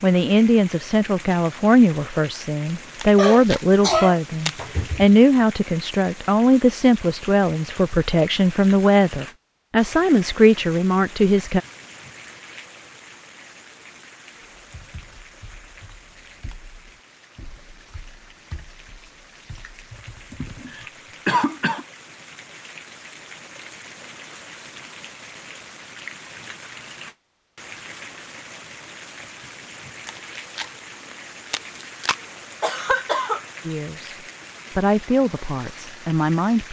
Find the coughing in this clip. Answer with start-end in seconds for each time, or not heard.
3.1-5.0, 20.3-21.9, 32.6-33.4.